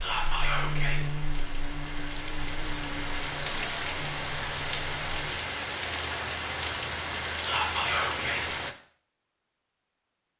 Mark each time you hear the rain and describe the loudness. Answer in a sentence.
You can hear the rain from 0.0 to 8.8 s, getting louder.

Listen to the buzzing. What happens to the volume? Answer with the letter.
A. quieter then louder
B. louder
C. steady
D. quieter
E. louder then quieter
D.